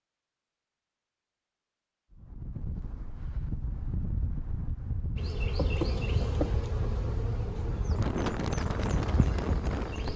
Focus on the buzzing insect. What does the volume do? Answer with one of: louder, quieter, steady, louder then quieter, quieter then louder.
quieter then louder.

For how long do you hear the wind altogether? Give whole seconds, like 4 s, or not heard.
8 s.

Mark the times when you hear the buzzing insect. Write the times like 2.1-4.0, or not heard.
5.2-10.1.